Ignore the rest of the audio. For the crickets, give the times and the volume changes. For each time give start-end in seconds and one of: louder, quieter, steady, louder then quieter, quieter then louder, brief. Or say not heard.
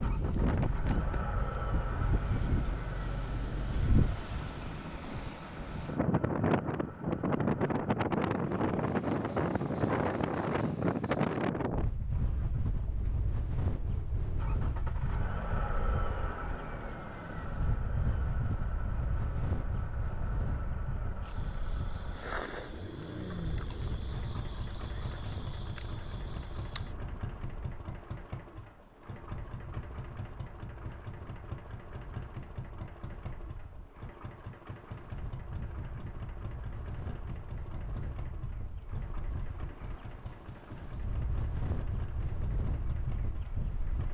0.0-27.2 louder then quieter.